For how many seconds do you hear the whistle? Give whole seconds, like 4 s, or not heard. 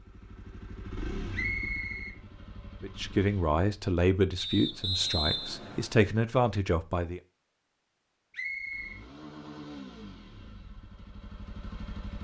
3 s.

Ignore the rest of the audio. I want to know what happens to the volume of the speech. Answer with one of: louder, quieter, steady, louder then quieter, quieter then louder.
quieter then louder.